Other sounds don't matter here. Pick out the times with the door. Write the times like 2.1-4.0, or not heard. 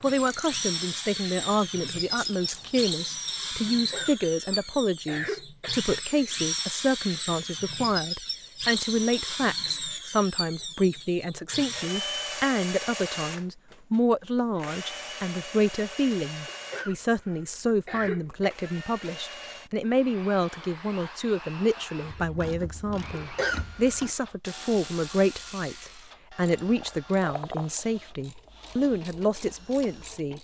not heard.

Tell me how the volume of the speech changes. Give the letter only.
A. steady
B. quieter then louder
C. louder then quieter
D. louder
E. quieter
A.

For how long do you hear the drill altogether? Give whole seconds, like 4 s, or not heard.
30 s.